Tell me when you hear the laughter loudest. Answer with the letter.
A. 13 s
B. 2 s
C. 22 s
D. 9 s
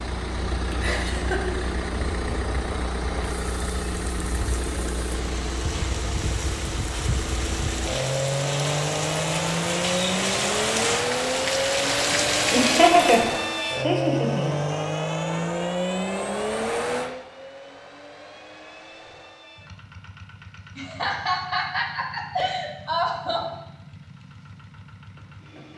A.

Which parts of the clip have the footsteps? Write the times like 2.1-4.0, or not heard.
not heard.